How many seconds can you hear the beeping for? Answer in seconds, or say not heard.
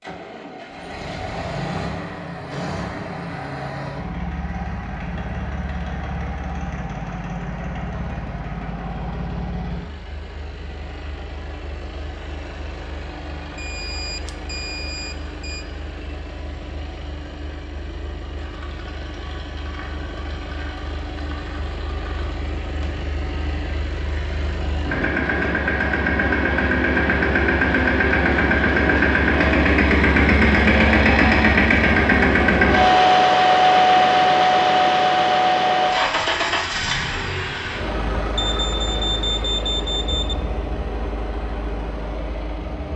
4 s.